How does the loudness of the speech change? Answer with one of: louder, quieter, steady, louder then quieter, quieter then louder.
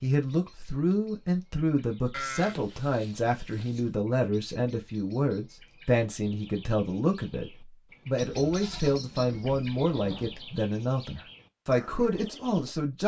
steady.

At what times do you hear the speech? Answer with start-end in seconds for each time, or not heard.
0.0-13.0.